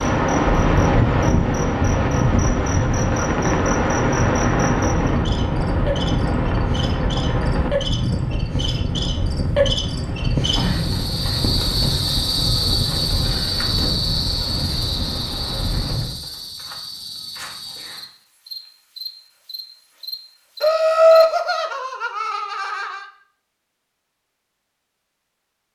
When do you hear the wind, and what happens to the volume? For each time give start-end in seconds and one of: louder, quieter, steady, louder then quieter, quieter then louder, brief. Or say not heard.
0.0-16.2 quieter.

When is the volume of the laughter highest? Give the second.
21 s.